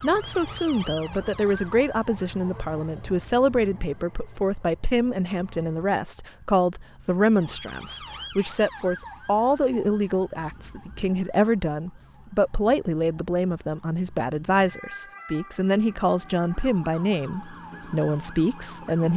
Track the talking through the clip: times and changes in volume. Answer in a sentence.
You can hear the talking from 0.0 to 19.1 s, at a steady volume.